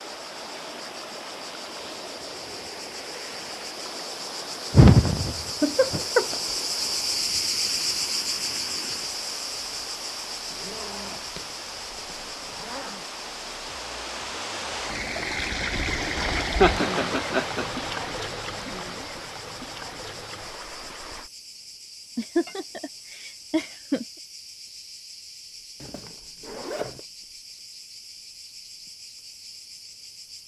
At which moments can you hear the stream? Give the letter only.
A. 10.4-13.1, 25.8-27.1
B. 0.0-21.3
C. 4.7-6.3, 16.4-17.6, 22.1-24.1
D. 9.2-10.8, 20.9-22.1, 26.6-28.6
B.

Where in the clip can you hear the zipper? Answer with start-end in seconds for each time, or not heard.
10.4-13.1, 25.8-27.1.